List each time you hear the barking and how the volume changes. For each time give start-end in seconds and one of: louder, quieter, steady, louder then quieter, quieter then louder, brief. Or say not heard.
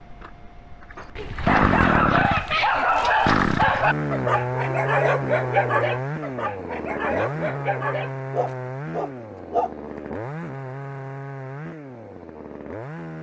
1.1-9.7 quieter.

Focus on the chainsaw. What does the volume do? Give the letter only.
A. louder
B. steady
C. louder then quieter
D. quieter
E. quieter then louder
D.